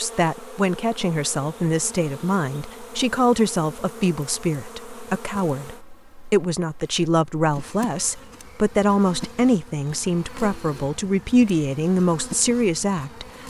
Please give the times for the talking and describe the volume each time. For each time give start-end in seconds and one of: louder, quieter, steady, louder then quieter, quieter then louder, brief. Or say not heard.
0.0-13.2 steady.